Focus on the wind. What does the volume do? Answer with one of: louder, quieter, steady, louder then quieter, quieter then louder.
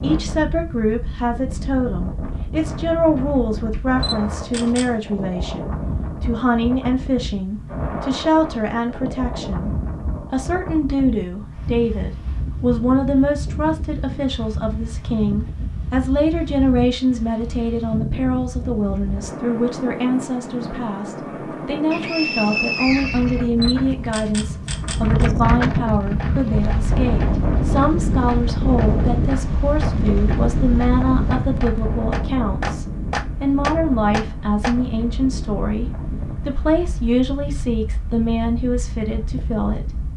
louder then quieter.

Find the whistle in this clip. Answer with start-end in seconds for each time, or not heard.
21.9-23.4.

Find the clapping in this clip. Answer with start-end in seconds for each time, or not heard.
26.1-34.8.